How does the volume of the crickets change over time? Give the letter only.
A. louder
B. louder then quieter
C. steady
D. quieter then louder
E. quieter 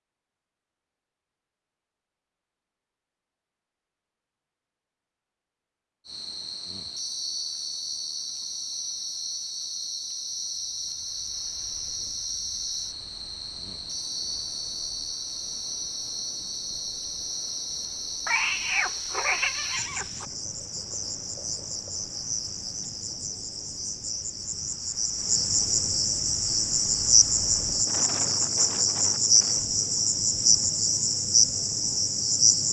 A.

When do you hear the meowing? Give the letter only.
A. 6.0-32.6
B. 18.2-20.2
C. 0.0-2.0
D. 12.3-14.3
B.